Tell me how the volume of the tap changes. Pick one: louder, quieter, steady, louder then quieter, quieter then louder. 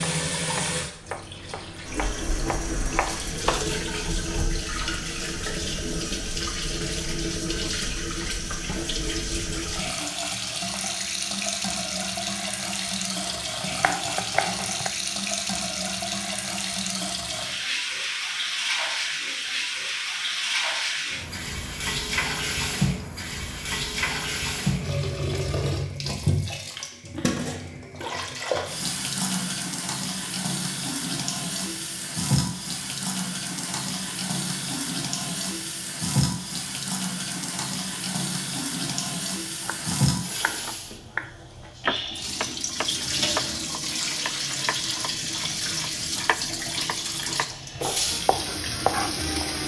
steady.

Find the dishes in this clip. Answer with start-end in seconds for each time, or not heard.
not heard.